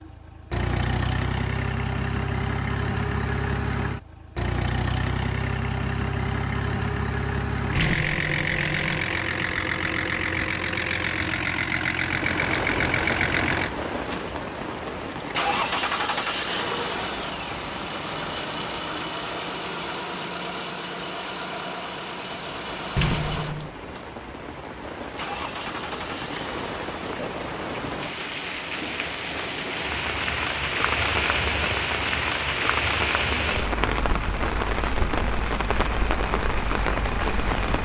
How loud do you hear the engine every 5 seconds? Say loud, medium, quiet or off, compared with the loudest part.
loud, loud, loud, loud, medium, medium, medium, medium.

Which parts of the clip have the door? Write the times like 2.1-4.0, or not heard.
7.8-9.1, 22.9-23.8.